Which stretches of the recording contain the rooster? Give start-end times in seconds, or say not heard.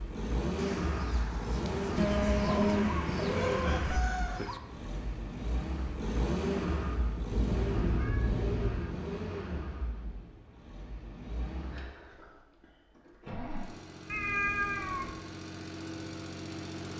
0.6-4.6.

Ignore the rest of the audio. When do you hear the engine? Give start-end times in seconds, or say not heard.
0.0-16.9.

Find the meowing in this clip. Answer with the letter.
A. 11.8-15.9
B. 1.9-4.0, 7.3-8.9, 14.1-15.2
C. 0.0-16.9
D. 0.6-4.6
B.